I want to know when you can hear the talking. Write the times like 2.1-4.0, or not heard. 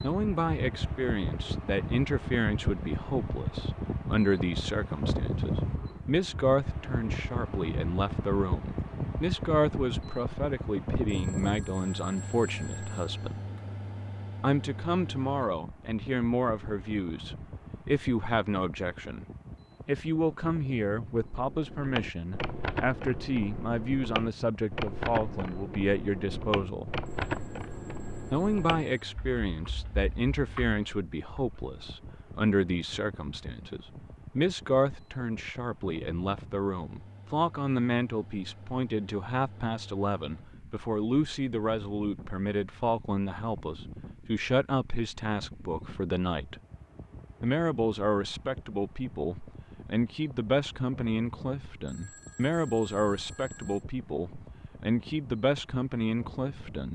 0.0-13.3, 14.4-19.2, 19.9-26.9, 28.3-46.5, 47.4-56.9.